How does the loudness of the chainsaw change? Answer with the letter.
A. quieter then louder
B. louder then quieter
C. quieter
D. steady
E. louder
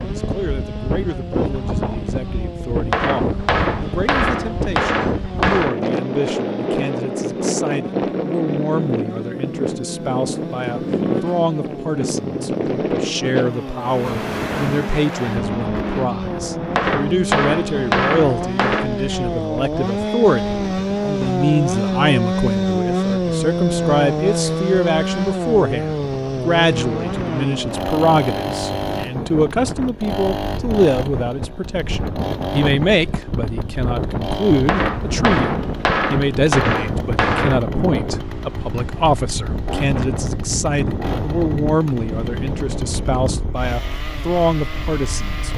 B.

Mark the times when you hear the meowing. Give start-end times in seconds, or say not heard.
not heard.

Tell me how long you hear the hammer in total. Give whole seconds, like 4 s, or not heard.
8 s.